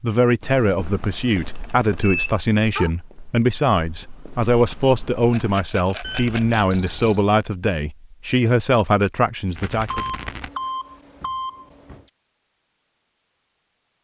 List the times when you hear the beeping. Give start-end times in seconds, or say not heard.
1.6-2.9, 6.0-7.2, 9.8-12.1.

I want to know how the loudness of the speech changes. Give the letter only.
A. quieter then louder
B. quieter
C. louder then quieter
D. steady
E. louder
D.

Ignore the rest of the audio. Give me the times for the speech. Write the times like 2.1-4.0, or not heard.
0.0-10.1.